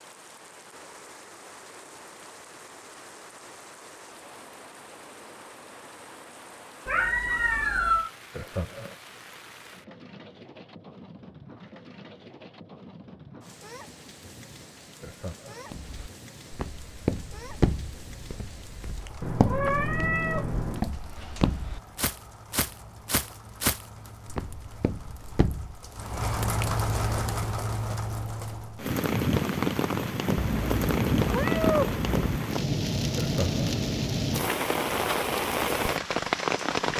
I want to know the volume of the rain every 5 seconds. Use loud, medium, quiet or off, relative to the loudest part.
quiet, quiet, quiet, quiet, quiet, loud, loud, loud.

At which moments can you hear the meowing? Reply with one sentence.
The meowing can be heard from 6.8 to 8.1 s, from 19.2 to 20.8 s and from 30.4 to 32.4 s.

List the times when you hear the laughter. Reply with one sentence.
The laughter can be heard from 8.3 to 8.9 s, from 15.0 to 15.7 s and from 33.1 to 33.6 s.